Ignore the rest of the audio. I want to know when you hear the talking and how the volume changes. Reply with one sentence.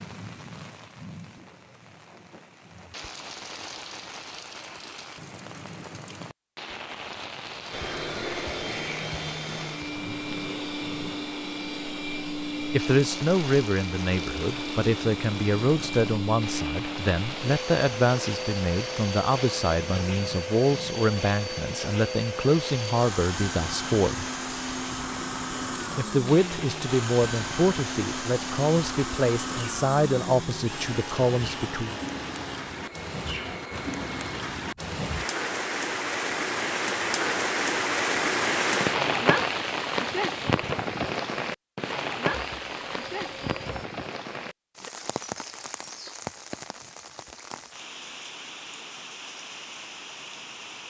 The talking can be heard from 12.7 to 24.2 s, at a steady volume; and from 25.9 to 31.9 s, at a steady volume.